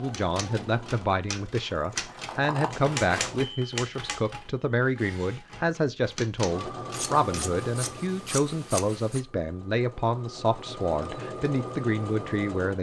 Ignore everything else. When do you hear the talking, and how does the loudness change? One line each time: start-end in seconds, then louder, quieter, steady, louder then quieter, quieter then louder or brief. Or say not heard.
0.0-12.7 steady.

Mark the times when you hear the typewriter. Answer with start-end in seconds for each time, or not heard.
0.1-7.4.